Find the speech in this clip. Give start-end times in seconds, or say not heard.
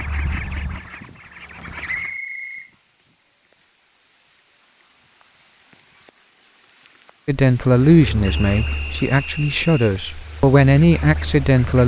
7.2-11.8.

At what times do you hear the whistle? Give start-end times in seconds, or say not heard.
1.9-2.7, 8.2-9.9.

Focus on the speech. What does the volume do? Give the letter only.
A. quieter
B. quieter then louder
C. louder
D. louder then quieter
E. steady
B.